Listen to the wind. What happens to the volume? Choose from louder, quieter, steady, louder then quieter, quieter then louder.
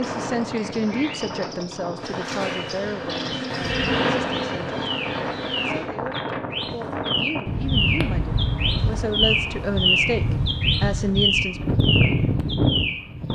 louder.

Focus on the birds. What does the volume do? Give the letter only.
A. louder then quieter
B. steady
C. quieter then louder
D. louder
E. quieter
D.